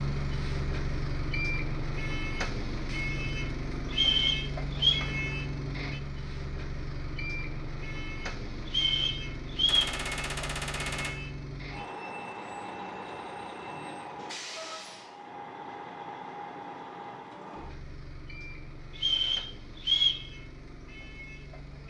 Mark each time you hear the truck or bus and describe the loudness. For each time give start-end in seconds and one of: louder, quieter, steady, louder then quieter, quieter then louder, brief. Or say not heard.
0.0-21.8 quieter.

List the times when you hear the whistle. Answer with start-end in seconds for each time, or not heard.
3.9-5.0, 8.7-9.9, 18.9-20.2.